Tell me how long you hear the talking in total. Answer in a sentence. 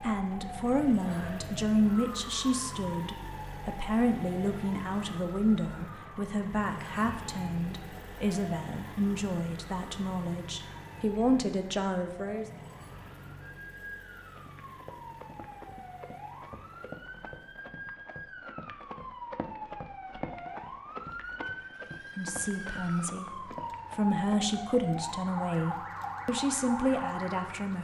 The talking can be heard for 18 seconds in total.